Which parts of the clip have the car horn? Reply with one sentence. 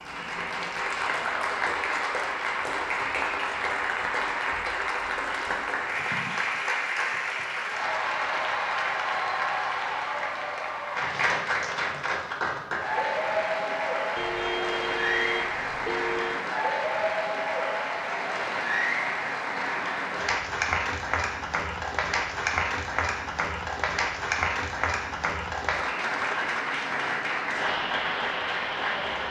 You can hear the car horn from 14.2 to 16.4 s.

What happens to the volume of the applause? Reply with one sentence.
The loudness of the applause stays about the same.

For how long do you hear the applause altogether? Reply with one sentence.
The applause can be heard for 29 seconds in total.